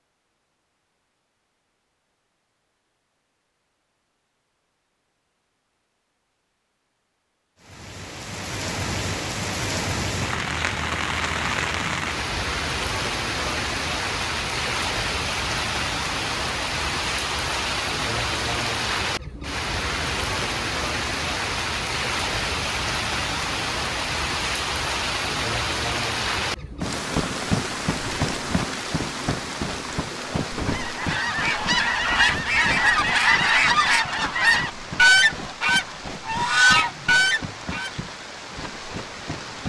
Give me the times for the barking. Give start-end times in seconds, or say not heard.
not heard.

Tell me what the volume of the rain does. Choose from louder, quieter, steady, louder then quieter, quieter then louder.
quieter.